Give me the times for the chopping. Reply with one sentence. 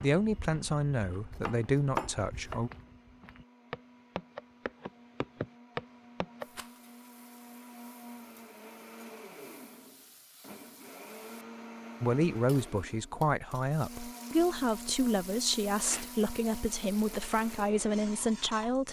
The chopping can be heard from 1.3 to 2.6 s.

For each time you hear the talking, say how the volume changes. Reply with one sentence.
You can hear the talking briefly from 0.0 to 2.7 s; and from 12.0 to 18.8 s, at a steady volume.